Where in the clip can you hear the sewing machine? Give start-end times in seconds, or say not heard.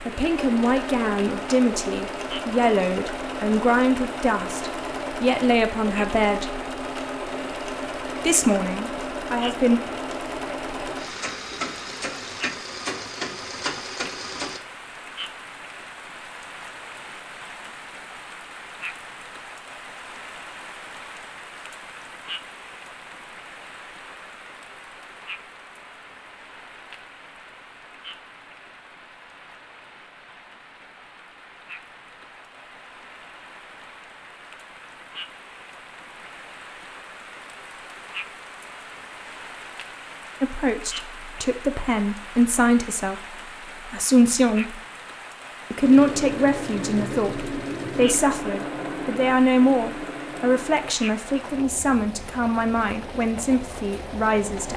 0.0-14.6, 45.8-54.7.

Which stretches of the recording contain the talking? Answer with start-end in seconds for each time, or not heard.
0.1-6.6, 8.2-9.8, 40.4-44.8, 45.7-54.7.